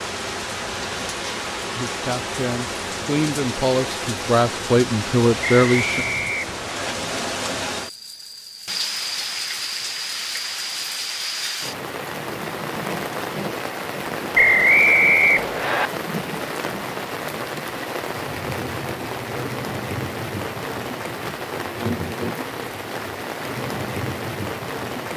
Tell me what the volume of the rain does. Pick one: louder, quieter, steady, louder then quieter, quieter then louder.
steady.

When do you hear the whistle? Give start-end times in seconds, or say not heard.
5.4-7.0, 14.3-15.9.